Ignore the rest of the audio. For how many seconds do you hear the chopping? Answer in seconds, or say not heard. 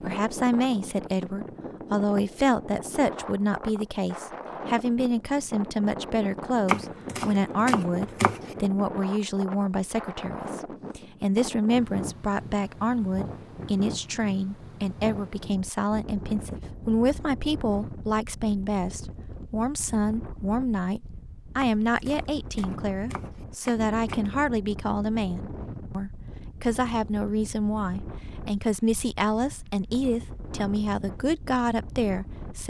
5 s.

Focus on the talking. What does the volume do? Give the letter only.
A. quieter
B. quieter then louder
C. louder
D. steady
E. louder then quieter
D.